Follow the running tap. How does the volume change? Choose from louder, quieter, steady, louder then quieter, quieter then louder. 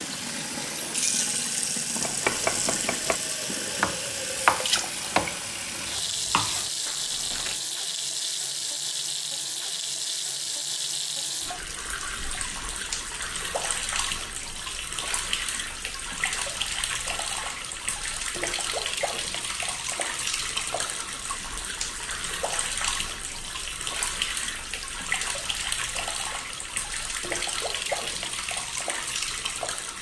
steady.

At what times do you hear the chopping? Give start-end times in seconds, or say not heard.
2.0-7.5.